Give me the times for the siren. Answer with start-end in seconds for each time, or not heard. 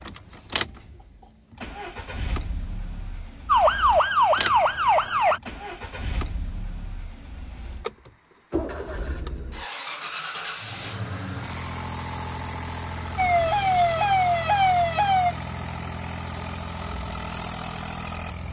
3.5-5.4, 13.2-15.3.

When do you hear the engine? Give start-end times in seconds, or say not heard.
0.0-18.4.